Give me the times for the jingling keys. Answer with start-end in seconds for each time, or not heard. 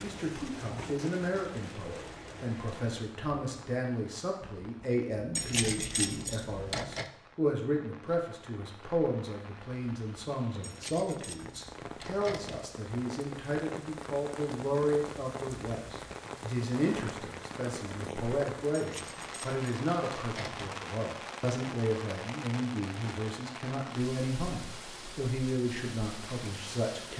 5.3-7.0, 10.6-12.7, 18.7-20.8.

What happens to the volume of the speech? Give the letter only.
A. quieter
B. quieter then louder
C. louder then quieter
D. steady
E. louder
D.